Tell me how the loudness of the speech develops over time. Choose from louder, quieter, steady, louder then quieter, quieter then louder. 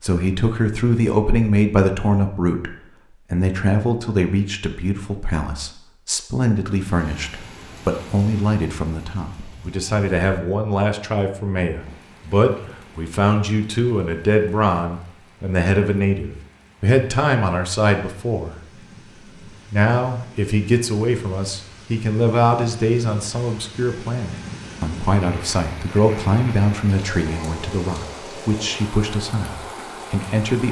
steady.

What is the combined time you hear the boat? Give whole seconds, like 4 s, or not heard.
not heard.